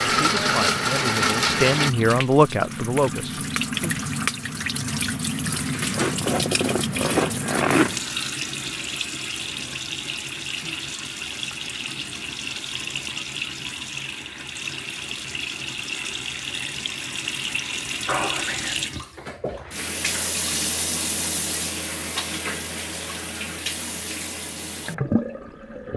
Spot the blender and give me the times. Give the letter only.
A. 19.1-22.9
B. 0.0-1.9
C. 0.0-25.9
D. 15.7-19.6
B.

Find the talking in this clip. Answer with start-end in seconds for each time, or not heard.
0.1-4.0.